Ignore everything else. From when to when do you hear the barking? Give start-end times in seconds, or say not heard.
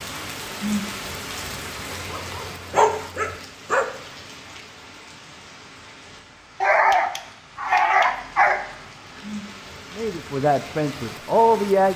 1.9-3.9, 6.6-8.6.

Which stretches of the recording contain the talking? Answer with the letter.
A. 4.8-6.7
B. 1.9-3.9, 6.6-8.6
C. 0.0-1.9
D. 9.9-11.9
D.